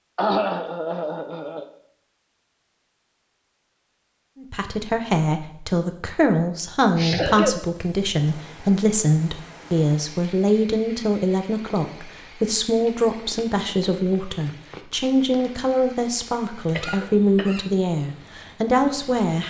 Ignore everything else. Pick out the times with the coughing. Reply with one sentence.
The coughing can be heard from 0.1 to 1.6 s, from 6.9 to 7.5 s and from 16.6 to 17.7 s.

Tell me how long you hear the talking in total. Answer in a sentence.
You can hear the talking for 15 seconds altogether.